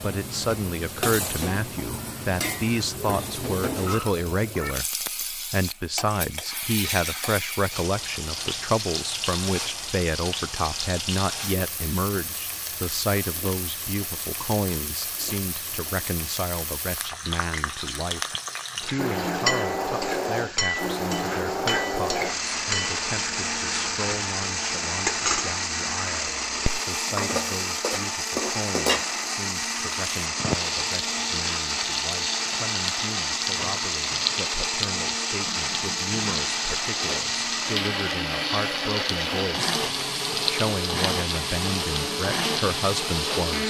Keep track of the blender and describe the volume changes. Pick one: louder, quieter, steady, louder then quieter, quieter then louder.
steady.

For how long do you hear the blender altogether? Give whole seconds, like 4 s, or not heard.
25 s.